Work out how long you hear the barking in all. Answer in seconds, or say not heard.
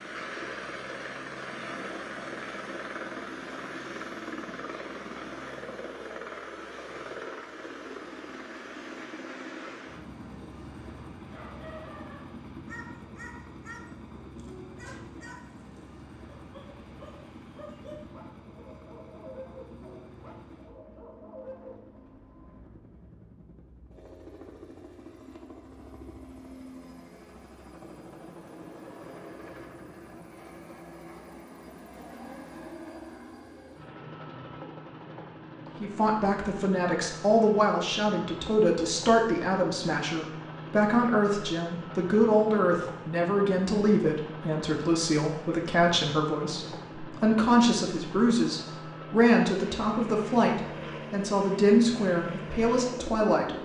11 s.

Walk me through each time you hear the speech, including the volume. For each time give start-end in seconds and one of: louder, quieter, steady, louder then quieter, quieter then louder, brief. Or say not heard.
35.8-53.6 steady.